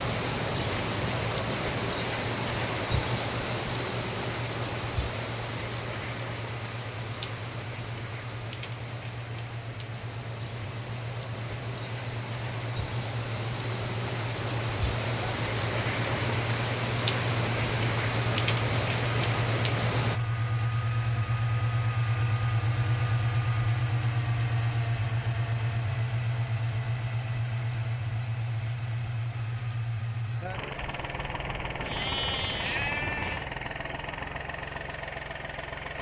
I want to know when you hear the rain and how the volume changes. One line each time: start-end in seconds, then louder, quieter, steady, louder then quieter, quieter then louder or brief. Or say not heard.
0.0-20.2 quieter then louder.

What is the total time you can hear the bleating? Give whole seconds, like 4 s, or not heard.
2 s.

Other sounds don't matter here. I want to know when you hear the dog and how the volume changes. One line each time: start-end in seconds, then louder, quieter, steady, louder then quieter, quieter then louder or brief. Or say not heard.
not heard.